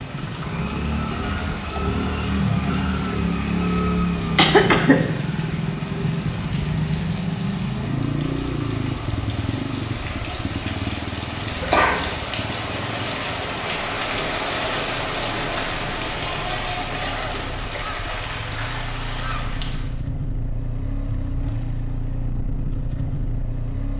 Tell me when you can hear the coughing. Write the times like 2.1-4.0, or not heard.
4.3-5.0, 11.6-12.2, 17.0-19.5.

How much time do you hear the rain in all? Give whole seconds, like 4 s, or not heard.
20 s.